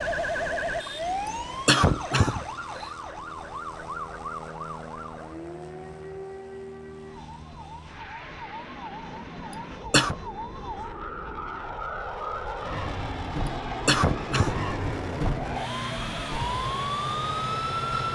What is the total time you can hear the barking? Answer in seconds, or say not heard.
not heard.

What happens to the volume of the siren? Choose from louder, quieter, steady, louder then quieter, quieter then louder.
quieter then louder.